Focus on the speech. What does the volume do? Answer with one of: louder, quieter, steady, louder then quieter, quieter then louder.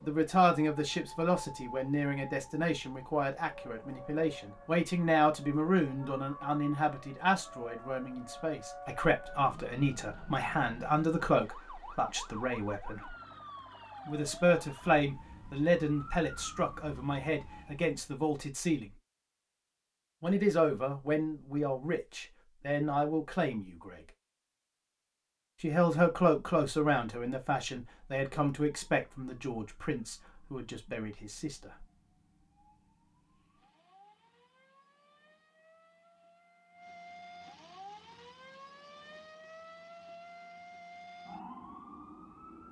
steady.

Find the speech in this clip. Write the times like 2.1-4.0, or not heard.
0.0-13.1, 14.1-18.9, 20.2-24.0, 25.6-31.9.